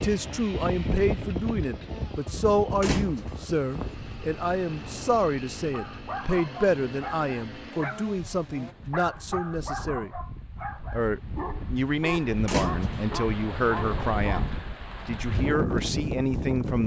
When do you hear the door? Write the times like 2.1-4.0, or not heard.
2.8-3.5, 12.4-13.0.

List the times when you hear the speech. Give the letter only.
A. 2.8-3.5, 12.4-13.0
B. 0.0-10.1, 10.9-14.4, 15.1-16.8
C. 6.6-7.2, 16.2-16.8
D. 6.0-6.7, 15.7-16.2
B.